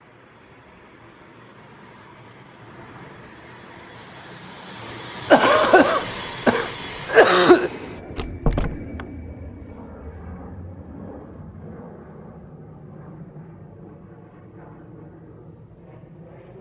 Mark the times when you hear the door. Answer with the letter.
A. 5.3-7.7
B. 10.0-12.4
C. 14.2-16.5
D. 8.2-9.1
D.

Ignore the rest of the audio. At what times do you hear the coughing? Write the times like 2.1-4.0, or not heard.
5.3-7.7.